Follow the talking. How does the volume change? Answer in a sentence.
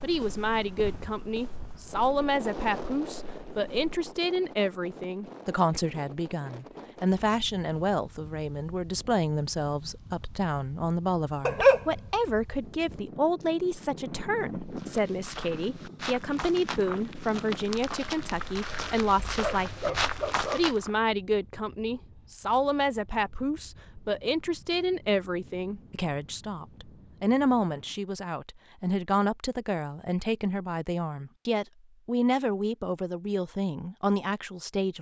The loudness of the talking stays about the same.